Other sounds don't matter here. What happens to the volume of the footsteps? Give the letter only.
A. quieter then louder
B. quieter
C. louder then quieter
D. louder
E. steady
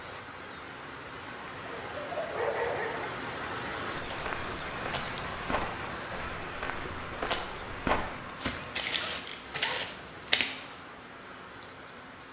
D.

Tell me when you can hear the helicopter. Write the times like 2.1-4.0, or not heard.
not heard.